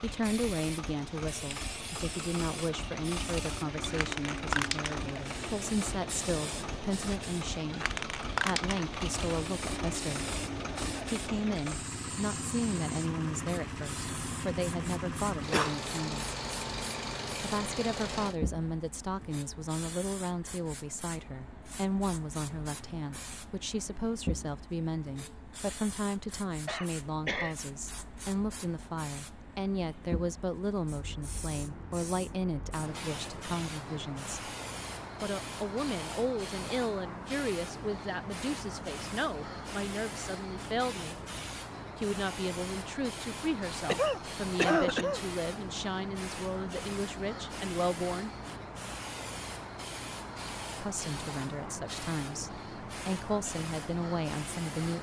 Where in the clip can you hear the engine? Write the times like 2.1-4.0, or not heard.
0.0-18.4.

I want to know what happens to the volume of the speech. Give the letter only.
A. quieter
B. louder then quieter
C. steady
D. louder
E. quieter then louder
C.